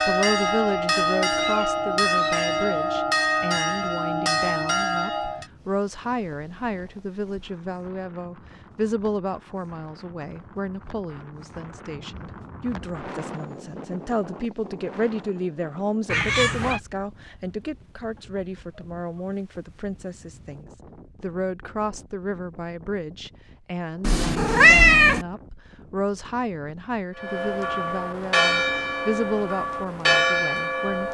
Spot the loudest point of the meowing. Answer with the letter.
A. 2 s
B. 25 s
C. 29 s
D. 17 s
B.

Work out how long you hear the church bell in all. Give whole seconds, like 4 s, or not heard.
9 s.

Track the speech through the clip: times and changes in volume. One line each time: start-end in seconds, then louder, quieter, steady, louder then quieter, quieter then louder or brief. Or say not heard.
0.1-31.0 steady.